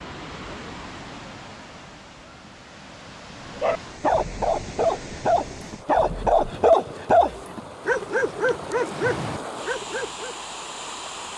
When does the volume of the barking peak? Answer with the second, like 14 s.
7 s.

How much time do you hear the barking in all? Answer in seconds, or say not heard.
7 s.